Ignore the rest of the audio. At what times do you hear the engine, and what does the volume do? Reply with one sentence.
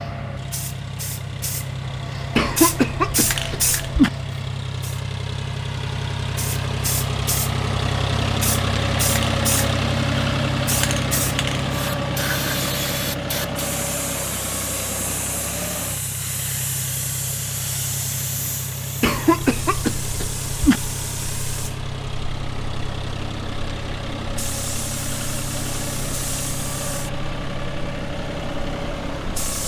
You can hear the engine from 0.0 to 29.6 s, getting louder then quieter.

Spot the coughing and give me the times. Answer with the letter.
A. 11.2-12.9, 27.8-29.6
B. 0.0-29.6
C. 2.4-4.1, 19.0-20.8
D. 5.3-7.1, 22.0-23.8
C.